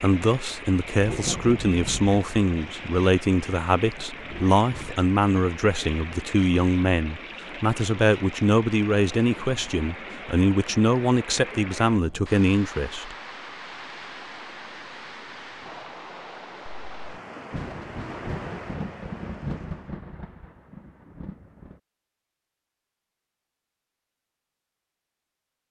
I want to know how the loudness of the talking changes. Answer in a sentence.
The volume of the talking stays about the same.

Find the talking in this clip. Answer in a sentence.
You can hear the talking from 0.0 to 13.2 s.